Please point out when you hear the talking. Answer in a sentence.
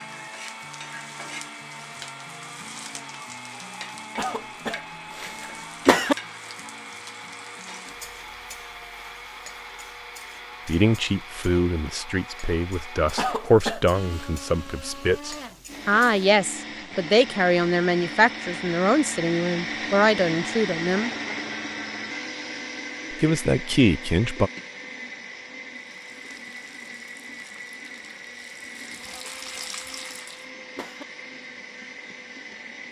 You can hear the talking from 10.7 to 21.1 s and from 23.1 to 24.5 s.